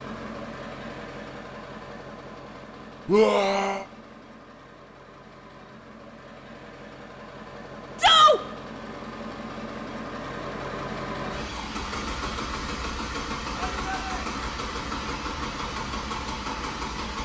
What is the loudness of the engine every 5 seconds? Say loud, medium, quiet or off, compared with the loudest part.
medium, medium, loud, loud.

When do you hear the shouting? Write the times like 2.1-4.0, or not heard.
3.0-3.9, 8.0-8.4, 13.6-14.2.